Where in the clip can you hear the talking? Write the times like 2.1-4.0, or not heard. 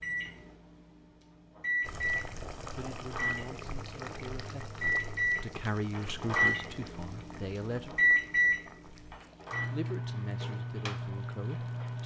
2.8-8.0, 9.7-12.0.